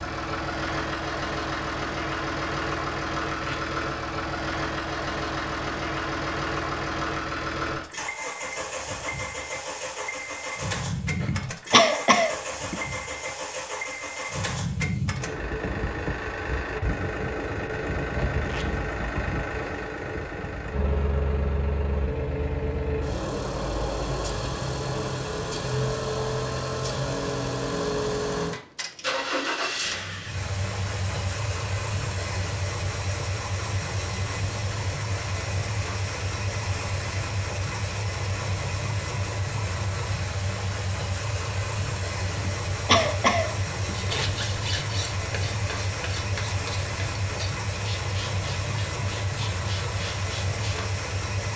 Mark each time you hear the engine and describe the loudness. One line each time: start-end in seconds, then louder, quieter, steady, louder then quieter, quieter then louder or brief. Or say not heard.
0.0-51.5 steady.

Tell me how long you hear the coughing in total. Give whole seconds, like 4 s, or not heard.
3 s.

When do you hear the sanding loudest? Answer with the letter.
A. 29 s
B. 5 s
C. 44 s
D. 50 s
C.